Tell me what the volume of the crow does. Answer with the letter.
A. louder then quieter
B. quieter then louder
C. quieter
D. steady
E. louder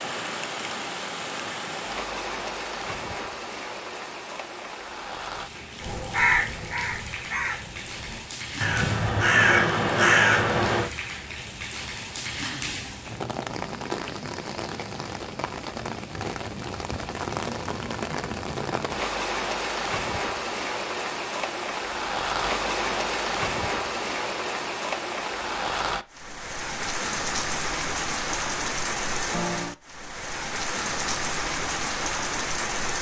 B.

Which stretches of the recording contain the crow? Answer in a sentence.
You can hear the crow from 5.8 to 10.9 s.